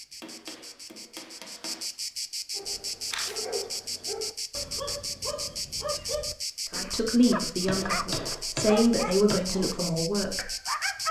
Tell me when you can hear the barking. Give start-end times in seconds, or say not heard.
2.5-11.0.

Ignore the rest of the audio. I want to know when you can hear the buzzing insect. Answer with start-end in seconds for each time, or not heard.
0.0-11.0.